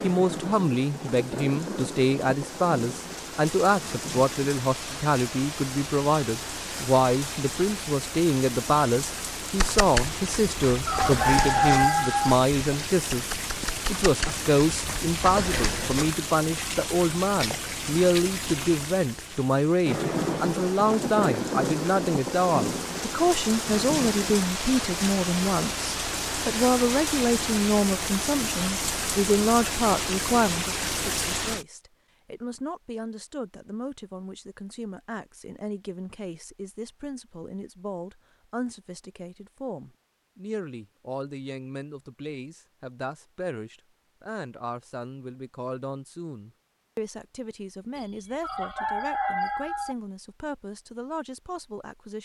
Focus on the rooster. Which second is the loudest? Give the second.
12 s.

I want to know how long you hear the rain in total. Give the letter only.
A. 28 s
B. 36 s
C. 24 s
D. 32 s
D.